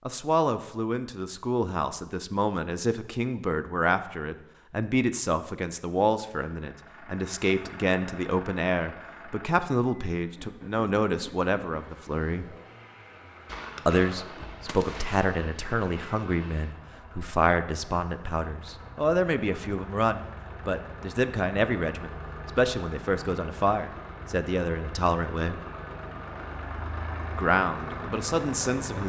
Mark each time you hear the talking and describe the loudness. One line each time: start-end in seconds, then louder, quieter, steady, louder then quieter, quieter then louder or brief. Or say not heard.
0.1-12.6 steady
13.8-25.6 steady
27.4-29.0 brief.